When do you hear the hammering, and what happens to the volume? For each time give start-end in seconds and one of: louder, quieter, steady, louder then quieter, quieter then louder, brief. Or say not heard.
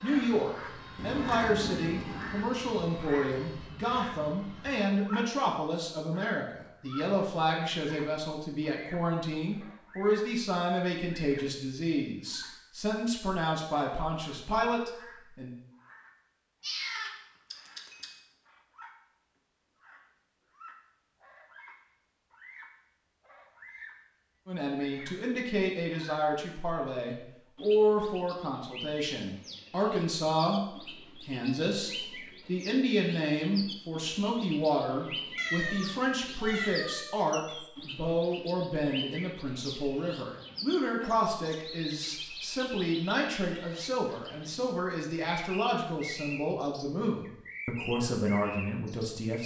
not heard.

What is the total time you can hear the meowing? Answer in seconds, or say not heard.
5 s.